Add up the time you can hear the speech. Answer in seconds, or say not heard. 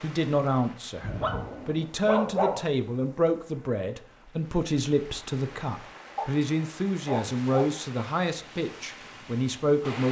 10 s.